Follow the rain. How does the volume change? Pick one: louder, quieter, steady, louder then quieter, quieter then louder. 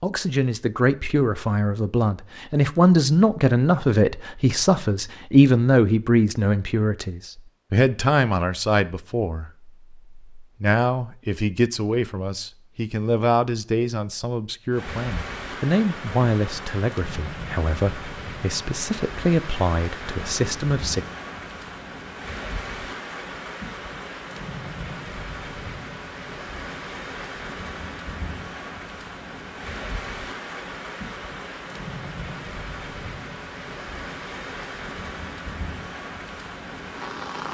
steady.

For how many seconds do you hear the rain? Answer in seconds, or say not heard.
23 s.